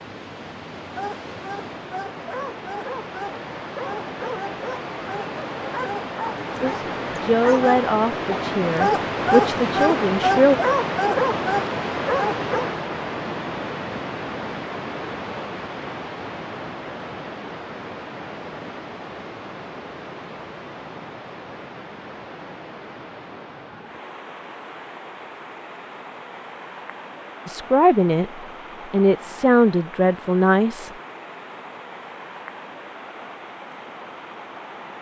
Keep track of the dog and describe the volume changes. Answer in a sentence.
The volume of the dog goes up.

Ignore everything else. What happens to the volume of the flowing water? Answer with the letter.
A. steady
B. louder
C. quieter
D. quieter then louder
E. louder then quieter
E.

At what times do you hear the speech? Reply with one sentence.
You can hear the speech from 6.6 to 10.6 s and from 27.4 to 30.9 s.